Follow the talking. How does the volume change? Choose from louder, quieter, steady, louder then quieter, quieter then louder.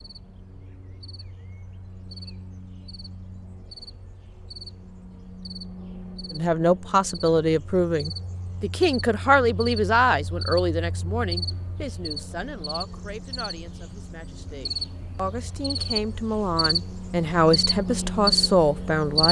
quieter then louder.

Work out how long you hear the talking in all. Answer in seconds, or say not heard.
13 s.